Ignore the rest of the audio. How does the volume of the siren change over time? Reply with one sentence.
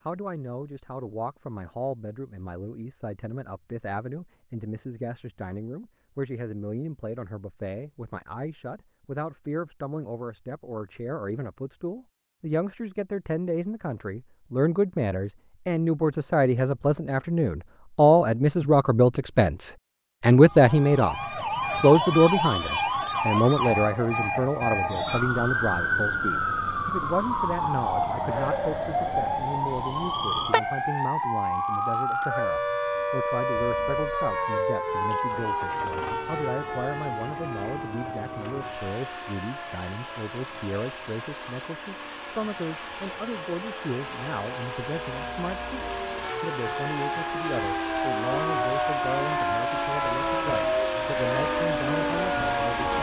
The volume of the siren goes down, then up.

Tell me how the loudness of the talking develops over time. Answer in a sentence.
The volume of the talking goes up, then down.